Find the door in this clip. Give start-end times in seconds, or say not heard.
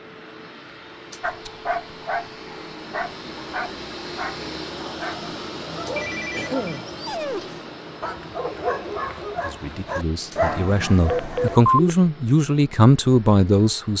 not heard.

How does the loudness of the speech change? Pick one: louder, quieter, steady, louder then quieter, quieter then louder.
louder.